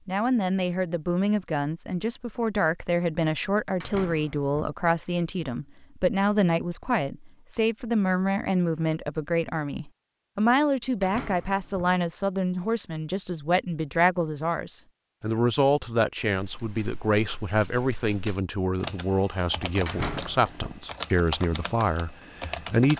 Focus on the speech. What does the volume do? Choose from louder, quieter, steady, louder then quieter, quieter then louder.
steady.